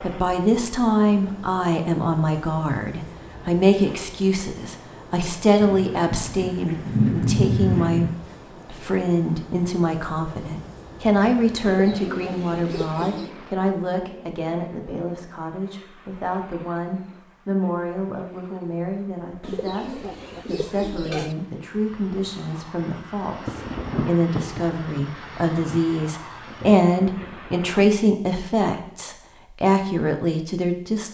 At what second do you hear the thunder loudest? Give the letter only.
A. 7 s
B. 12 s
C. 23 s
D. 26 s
A.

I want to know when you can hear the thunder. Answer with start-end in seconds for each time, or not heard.
5.6-8.2, 23.4-27.9.